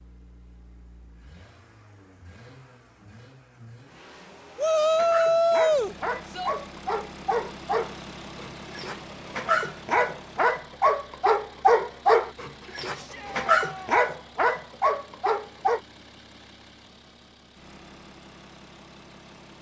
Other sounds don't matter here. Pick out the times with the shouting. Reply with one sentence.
The shouting can be heard from 4.5 to 6.5 s and from 12.9 to 14.0 s.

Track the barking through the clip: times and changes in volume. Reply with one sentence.
You can hear the barking from 4.9 to 15.8 s, getting louder.